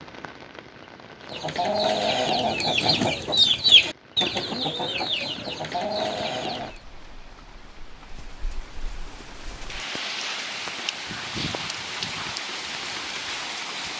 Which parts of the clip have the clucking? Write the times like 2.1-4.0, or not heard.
1.2-6.8.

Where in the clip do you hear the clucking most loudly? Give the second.
4 s.